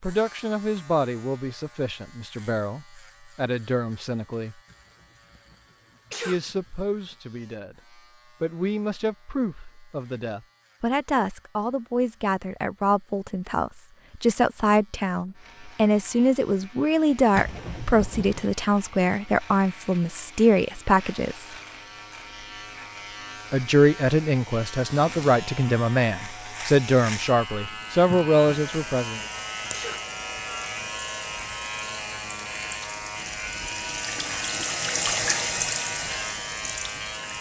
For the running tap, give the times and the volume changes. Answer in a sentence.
The running tap can be heard from 27.6 to 37.3 s, getting louder.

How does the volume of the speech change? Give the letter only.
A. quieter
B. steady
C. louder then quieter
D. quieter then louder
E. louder
E.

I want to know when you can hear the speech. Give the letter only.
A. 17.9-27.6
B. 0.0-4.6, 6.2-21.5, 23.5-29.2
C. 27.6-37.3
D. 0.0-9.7
B.